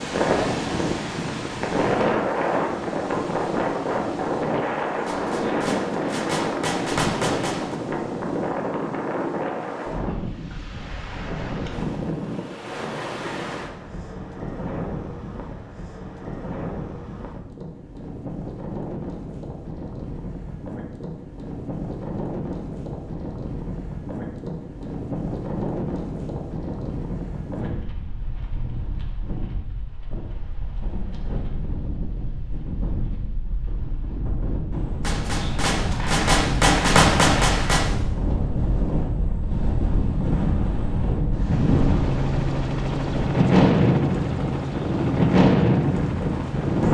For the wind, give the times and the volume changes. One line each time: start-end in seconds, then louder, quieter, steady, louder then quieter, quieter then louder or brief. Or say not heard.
0.0-46.8 quieter then louder.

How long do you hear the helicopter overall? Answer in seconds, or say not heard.
5 s.